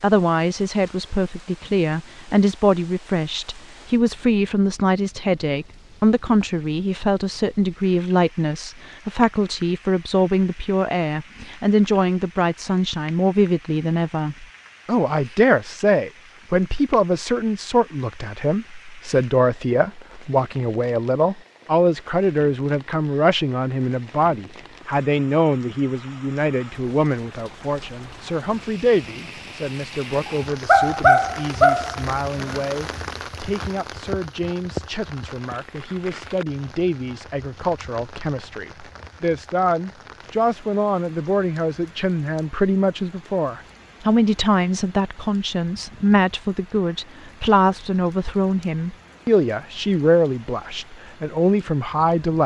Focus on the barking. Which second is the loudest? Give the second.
31 s.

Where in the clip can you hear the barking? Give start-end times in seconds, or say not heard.
30.2-32.6.